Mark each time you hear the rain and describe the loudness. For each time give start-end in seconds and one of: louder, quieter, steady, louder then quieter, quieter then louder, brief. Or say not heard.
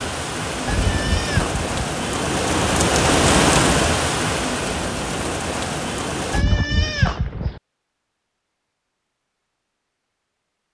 0.0-6.5 louder then quieter.